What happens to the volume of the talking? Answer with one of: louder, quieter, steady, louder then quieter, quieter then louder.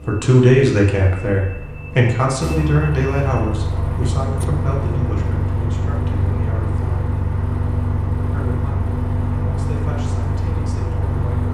quieter.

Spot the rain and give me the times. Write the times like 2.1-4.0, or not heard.
not heard.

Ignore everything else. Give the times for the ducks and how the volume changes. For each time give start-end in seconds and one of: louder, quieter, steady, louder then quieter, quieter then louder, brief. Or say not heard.
not heard.